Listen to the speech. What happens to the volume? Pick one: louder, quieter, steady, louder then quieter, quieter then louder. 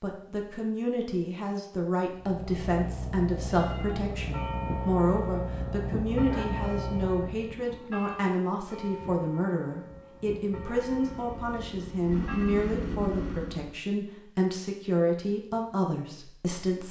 steady.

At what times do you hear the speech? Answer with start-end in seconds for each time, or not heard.
0.0-16.8.